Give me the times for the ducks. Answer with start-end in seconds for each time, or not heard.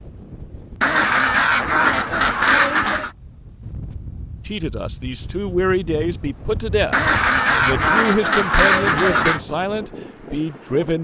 0.8-3.1, 6.9-9.4.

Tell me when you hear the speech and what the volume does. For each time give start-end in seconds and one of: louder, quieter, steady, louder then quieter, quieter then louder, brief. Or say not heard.
4.5-11.0 steady.